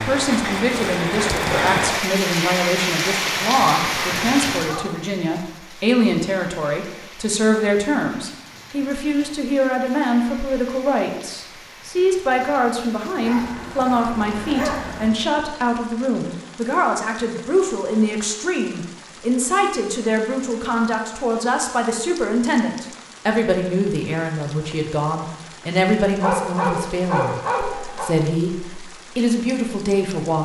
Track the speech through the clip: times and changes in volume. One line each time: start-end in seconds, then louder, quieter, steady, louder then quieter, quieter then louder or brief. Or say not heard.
0.0-30.4 steady.